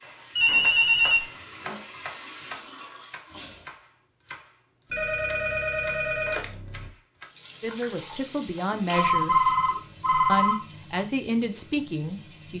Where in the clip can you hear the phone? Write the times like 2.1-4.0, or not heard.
0.3-1.8, 4.9-6.9, 8.7-10.7.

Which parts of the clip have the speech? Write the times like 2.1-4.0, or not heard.
7.6-9.3, 10.2-12.5.